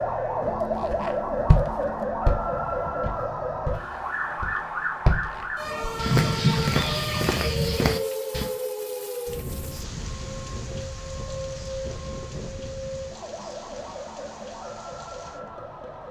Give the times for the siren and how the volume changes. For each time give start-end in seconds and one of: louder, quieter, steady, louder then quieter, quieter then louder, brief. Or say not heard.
0.0-16.0 quieter.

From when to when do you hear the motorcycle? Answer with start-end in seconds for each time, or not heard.
not heard.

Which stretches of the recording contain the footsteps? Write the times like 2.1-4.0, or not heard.
0.9-8.5.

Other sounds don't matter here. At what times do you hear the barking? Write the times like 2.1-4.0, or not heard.
not heard.